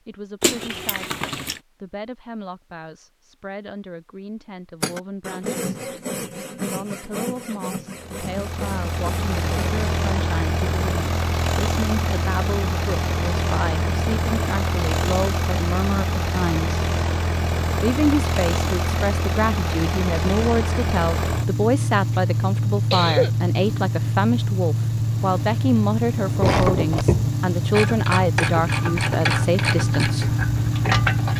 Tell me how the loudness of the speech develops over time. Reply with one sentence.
The loudness of the speech goes up.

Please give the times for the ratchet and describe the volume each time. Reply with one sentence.
The ratchet can be heard from 26.2 to 31.3 s, getting quieter.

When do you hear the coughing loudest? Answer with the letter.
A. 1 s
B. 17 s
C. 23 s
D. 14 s
C.